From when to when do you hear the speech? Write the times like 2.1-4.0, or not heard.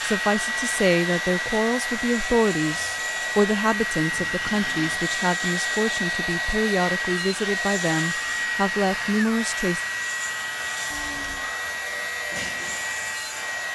0.0-9.8.